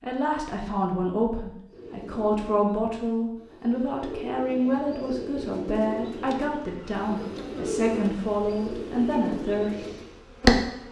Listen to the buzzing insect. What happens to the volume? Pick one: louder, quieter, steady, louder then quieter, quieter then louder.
louder then quieter.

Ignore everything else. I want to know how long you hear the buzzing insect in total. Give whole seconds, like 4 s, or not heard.
5 s.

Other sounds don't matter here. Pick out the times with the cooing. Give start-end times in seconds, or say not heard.
1.7-10.1.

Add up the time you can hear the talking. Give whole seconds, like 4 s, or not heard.
10 s.